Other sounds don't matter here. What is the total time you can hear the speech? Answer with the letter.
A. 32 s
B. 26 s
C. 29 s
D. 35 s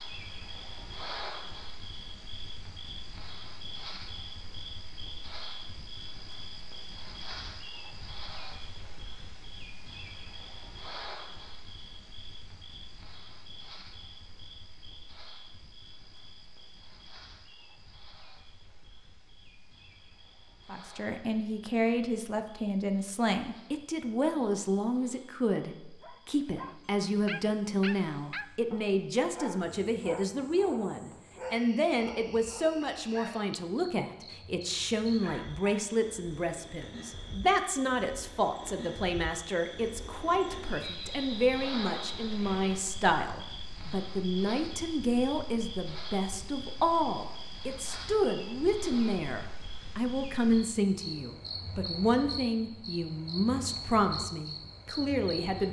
D.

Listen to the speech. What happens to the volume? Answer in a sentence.
The loudness of the speech stays about the same.